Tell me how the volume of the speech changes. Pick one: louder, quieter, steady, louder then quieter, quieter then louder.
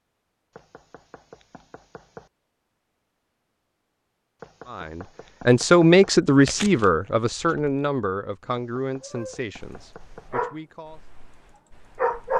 quieter.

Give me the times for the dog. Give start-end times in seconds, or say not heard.
9.0-12.3.